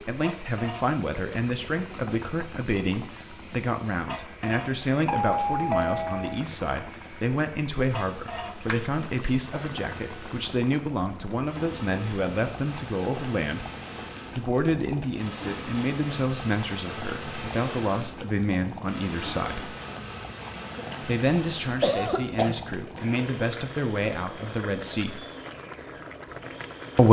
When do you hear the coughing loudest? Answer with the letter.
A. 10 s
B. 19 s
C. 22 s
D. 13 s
C.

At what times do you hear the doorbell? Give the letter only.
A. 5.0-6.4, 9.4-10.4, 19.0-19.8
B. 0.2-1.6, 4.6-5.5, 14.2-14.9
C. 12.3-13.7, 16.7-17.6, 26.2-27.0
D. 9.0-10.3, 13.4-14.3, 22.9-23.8
A.